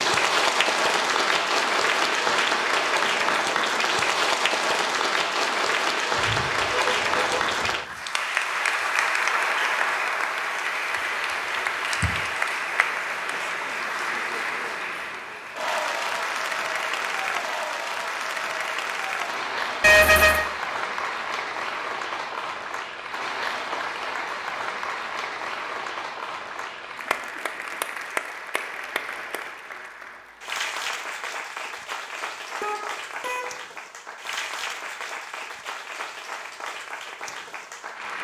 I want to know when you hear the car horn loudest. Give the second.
20 s.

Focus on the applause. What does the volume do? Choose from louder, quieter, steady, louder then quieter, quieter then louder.
quieter.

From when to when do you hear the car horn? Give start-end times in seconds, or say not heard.
6.2-7.8, 19.8-20.4, 32.6-33.5.